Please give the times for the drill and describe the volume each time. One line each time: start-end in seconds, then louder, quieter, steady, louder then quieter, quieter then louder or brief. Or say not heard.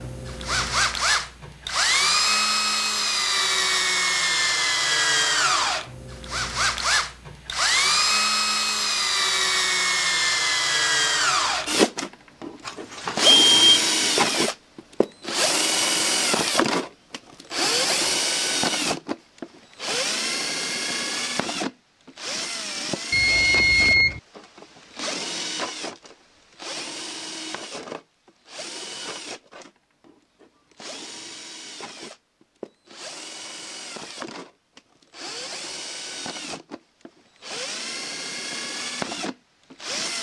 0.0-40.1 quieter.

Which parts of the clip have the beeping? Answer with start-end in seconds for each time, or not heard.
12.7-13.8, 23.1-24.2.